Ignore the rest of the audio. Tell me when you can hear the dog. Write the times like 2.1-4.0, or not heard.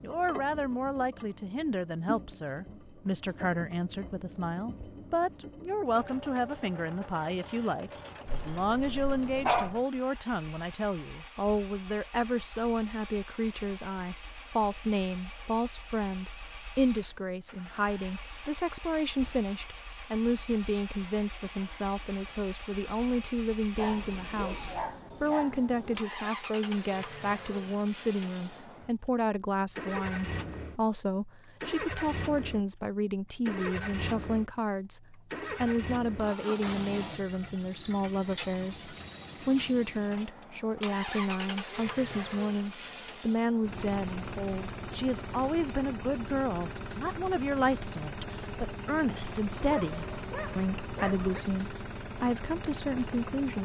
8.2-9.8, 23.8-26.1, 49.6-51.5.